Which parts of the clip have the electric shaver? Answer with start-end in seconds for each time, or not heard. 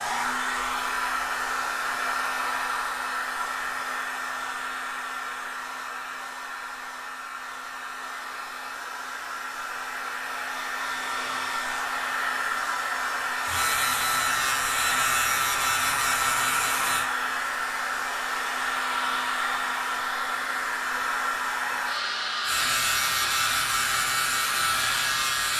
13.4-17.1, 22.4-25.5.